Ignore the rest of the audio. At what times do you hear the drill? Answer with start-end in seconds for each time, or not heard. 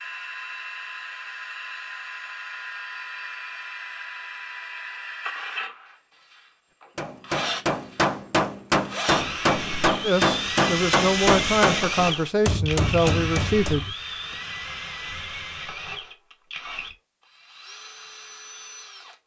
0.0-19.1.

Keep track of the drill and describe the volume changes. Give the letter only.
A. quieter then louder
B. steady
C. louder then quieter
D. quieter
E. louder
C.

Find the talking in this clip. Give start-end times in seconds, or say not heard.
10.0-13.8.